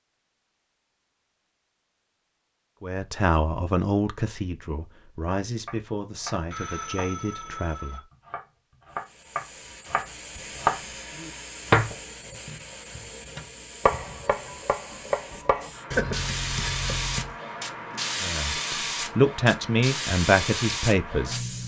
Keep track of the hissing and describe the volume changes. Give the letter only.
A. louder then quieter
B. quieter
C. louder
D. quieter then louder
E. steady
C.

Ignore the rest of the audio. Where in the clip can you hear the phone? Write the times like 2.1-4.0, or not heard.
6.5-8.0.